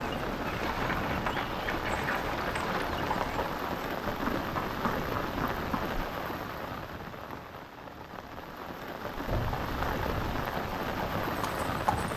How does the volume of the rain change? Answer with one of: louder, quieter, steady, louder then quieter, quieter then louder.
quieter then louder.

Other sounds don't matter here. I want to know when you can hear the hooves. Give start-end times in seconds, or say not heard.
0.0-6.0, 9.2-12.1.